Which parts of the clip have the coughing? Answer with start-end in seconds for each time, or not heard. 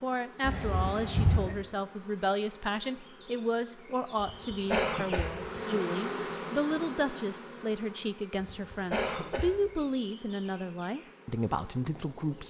0.4-1.6, 4.2-5.6, 8.4-9.8.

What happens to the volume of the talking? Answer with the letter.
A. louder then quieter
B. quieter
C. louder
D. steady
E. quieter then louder
D.